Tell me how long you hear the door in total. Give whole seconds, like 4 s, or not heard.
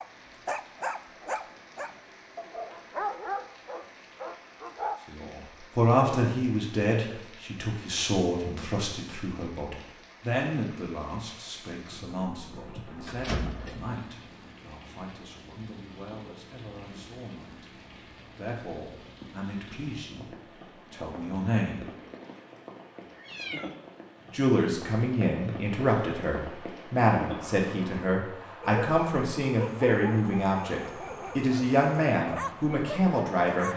2 s.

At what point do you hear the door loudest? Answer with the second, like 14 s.
13 s.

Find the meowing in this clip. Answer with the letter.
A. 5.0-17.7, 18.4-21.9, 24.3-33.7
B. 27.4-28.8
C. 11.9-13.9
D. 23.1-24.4
D.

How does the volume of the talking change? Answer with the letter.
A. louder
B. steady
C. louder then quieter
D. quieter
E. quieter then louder
E.